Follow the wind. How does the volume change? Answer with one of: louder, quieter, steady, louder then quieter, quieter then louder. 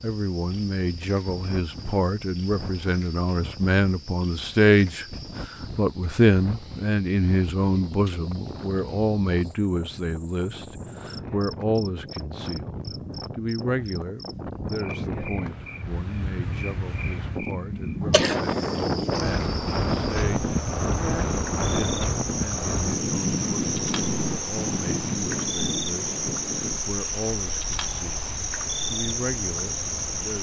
louder then quieter.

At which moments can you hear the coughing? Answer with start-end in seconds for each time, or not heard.
18.0-19.3.